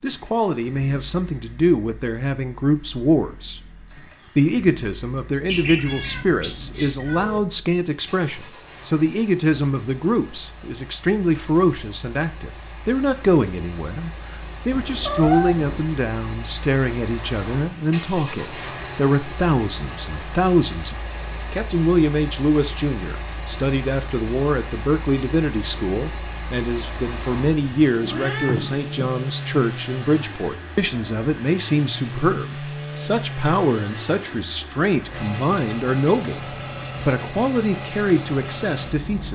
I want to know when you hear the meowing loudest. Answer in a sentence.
The loudest moment of the meowing is at 15 seconds.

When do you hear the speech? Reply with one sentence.
You can hear the speech from 0.0 to 3.6 s, from 4.3 to 36.4 s and from 37.0 to 39.3 s.